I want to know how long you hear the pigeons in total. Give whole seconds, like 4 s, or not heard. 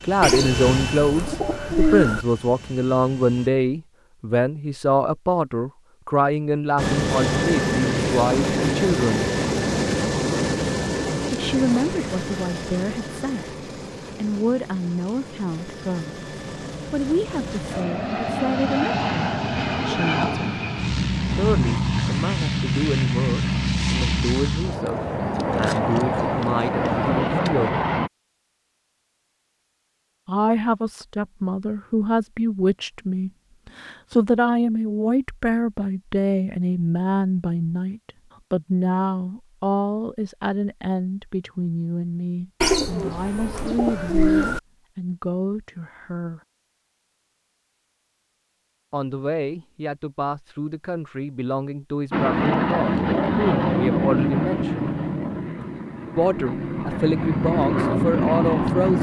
4 s.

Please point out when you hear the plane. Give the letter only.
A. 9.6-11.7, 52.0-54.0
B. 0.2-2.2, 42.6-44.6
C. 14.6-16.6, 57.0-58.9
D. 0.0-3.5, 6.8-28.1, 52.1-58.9
D.